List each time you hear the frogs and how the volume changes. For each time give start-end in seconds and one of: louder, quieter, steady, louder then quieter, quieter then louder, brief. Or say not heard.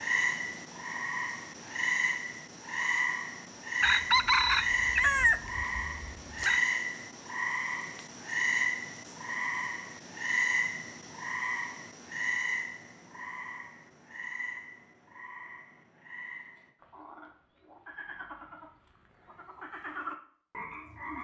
0.0-21.2 quieter.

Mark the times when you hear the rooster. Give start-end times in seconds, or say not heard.
3.8-6.6.